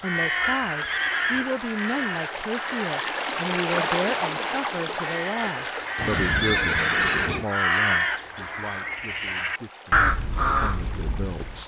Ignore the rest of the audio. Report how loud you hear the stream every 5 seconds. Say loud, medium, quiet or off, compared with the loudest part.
loud, medium, quiet.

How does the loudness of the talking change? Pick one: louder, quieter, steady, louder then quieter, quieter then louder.
quieter.